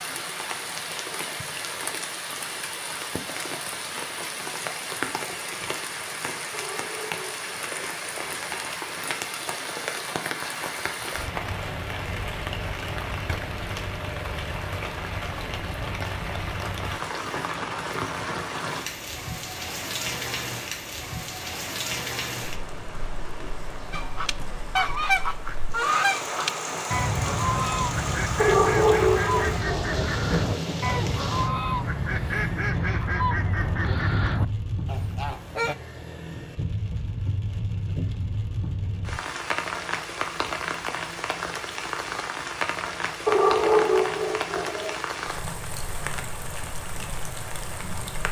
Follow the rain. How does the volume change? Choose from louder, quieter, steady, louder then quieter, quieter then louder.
steady.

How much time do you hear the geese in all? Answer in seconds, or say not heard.
12 s.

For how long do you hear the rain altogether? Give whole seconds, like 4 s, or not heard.
48 s.